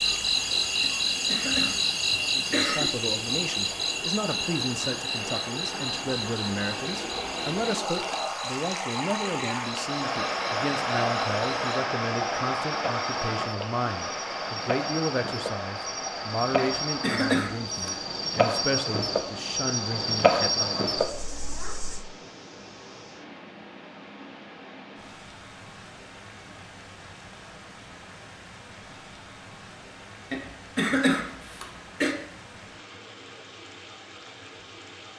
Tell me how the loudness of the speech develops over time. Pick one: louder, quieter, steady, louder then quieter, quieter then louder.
steady.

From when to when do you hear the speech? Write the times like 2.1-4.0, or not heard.
2.4-20.8.